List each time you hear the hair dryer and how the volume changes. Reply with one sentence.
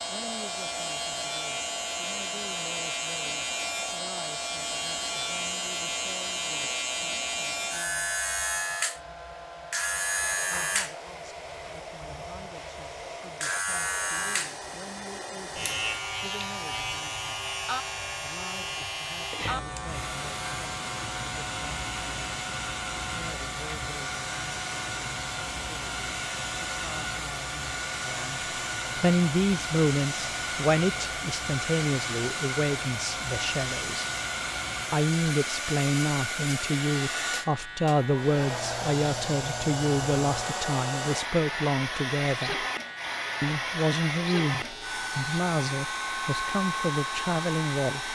You can hear the hair dryer from 0.0 to 48.1 s, getting louder.